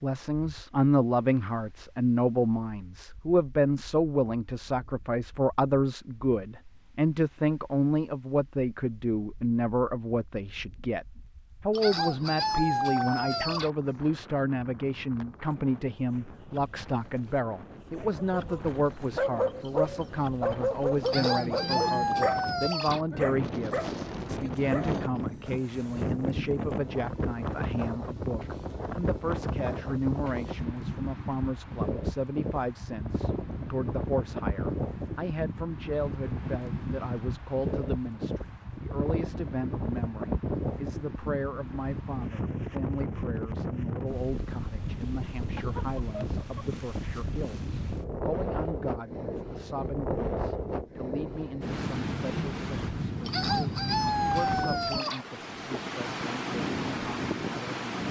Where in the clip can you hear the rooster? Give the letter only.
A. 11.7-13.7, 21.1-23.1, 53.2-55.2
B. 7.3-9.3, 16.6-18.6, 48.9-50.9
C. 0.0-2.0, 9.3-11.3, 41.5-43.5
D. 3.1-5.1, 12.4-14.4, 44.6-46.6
A.